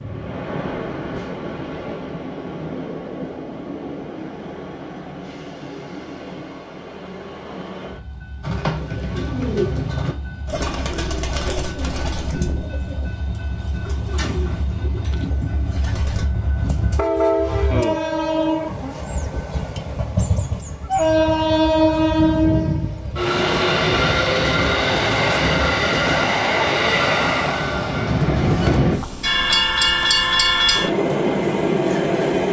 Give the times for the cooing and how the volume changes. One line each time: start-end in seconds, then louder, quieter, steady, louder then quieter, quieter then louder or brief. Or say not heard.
8.4-16.3 quieter.